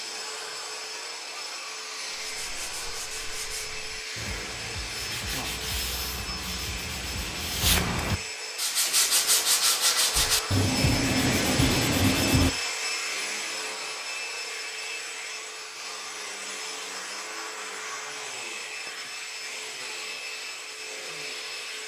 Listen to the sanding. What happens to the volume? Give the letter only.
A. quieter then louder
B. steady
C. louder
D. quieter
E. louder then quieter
C.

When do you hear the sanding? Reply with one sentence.
The sanding can be heard from 2.2 to 12.5 s.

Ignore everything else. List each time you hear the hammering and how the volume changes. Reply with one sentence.
The hammering can't be heard in this clip.